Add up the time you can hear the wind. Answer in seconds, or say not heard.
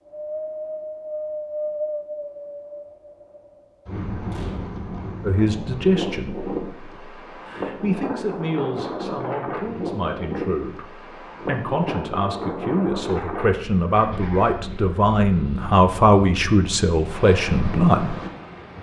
19 s.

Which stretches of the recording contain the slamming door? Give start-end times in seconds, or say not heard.
4.3-4.8.